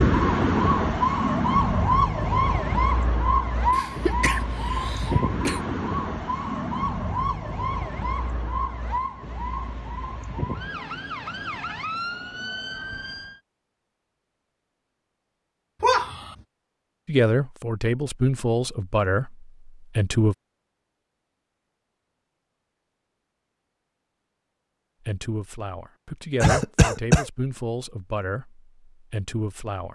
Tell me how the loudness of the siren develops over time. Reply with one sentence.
The loudness of the siren goes down.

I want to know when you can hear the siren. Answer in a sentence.
You can hear the siren from 0.0 to 13.4 s.